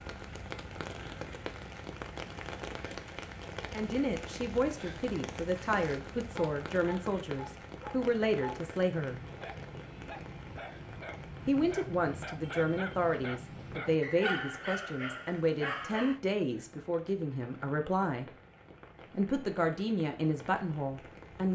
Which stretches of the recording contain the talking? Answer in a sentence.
You can hear the talking from 3.7 to 9.2 s, from 11.4 to 18.2 s and from 19.1 to 21.5 s.